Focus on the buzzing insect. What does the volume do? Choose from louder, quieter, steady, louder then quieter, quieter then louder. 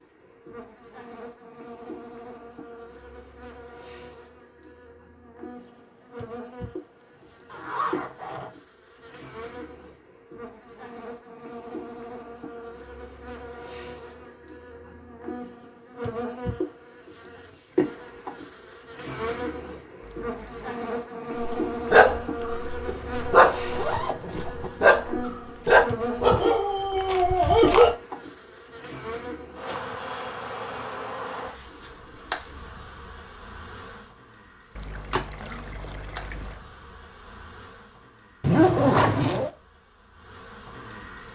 louder then quieter.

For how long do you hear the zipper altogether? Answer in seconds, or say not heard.
4 s.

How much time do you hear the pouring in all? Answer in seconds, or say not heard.
5 s.